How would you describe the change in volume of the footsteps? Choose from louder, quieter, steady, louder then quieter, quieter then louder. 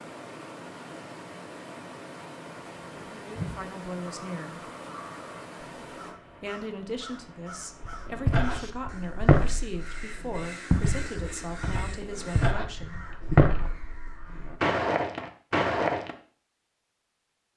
quieter then louder.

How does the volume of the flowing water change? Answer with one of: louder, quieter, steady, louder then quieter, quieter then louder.
quieter.